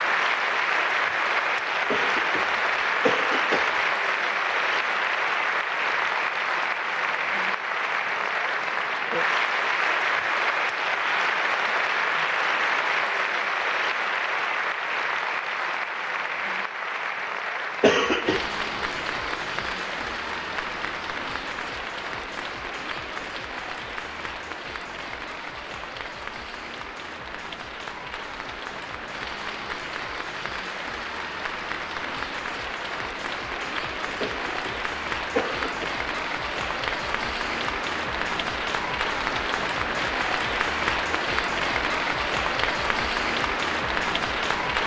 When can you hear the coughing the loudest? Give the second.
18 s.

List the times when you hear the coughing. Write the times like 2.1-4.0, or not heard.
1.9-3.8, 17.8-18.4, 34.2-35.9.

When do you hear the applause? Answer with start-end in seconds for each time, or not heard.
0.0-44.8.